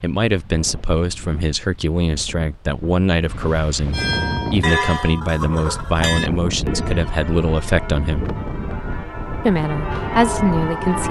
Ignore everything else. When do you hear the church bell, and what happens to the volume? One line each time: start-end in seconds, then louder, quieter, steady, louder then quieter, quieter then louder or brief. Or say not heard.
3.9-11.0 quieter then louder.